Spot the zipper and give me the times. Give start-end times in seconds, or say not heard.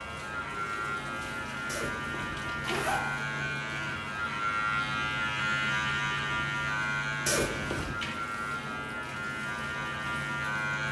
1.6-3.0, 7.2-8.0.